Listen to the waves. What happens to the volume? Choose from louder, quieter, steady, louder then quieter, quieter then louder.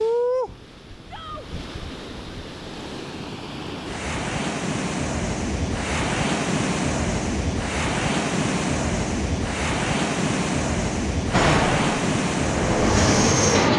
louder.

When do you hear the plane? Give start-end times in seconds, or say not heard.
11.3-13.7.